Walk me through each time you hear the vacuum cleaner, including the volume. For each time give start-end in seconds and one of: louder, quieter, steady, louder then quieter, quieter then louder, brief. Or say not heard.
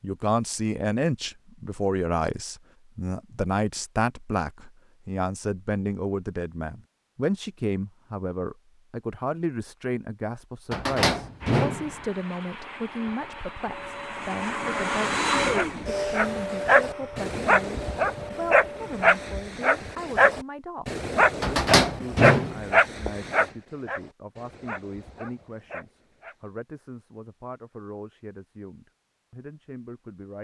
11.4-19.4 louder then quieter.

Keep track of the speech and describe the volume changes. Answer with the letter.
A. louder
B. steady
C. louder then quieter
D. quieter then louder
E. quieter
E.